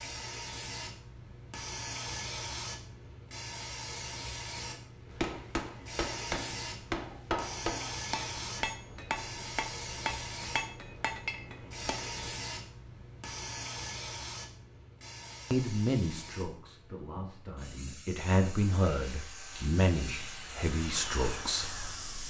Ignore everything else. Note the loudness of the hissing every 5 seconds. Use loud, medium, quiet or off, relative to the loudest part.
loud, loud, loud, medium, loud.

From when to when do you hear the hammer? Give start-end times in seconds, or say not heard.
5.1-12.2.